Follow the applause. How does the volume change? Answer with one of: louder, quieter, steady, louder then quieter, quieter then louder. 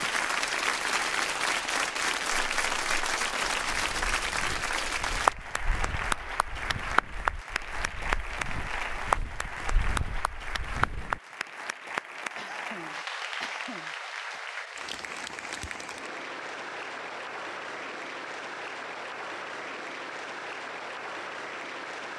quieter.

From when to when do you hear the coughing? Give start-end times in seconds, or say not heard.
12.3-14.4.